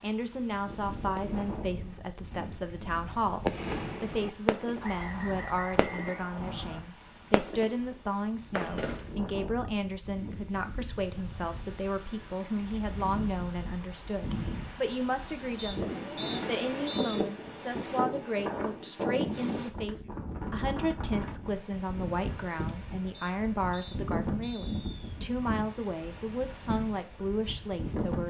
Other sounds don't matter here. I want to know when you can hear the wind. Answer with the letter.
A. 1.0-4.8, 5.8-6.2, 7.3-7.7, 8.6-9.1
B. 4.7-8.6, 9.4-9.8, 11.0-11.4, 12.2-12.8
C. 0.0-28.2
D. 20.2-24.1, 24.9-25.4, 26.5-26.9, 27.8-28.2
C.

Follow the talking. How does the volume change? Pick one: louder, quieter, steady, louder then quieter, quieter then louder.
steady.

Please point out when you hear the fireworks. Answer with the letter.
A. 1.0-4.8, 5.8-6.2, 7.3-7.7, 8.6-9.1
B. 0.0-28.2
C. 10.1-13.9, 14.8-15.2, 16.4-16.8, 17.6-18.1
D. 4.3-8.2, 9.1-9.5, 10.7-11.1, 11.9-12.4
A.